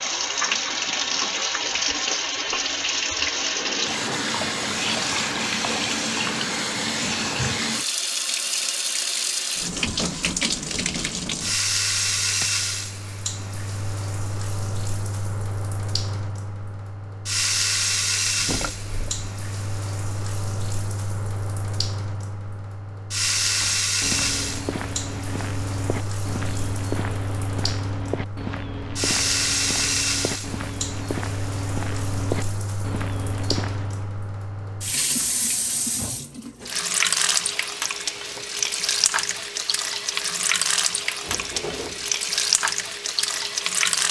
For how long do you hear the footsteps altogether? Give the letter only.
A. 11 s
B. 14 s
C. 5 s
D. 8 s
A.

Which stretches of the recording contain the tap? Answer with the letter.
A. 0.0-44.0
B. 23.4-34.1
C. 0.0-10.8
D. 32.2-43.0
A.